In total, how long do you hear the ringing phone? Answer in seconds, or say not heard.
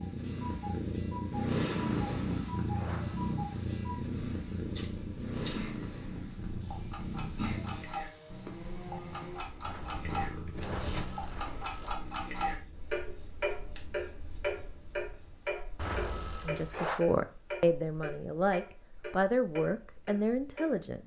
5 s.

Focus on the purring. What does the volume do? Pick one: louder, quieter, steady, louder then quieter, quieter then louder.
quieter.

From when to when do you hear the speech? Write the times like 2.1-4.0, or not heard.
16.4-21.0.